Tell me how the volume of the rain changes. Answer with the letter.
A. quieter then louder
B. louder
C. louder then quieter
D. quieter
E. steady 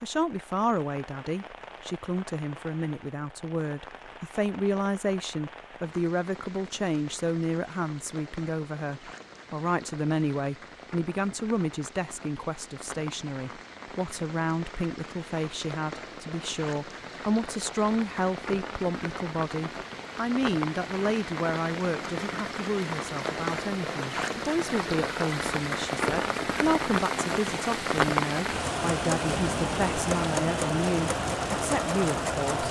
B.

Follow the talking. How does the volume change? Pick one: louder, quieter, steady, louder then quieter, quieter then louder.
steady.